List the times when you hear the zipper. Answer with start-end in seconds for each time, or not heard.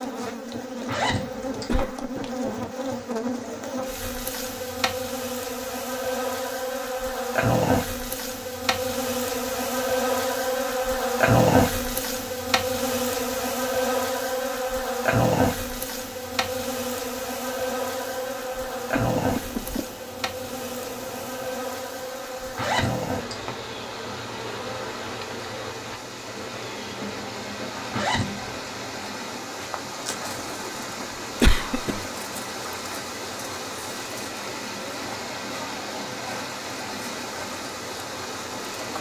0.8-1.9, 22.6-23.5, 27.9-28.4.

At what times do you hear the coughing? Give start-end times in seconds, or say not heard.
1.6-2.3, 18.9-19.9, 31.4-32.0.